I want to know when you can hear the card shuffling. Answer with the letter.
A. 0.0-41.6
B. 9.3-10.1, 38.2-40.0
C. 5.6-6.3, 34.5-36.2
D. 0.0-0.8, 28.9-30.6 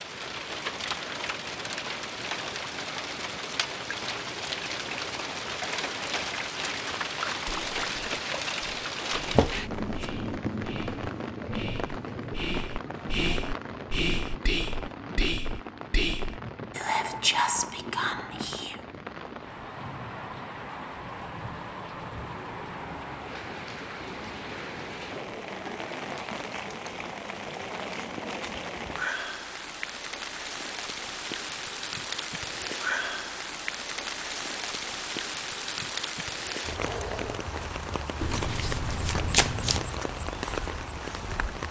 B.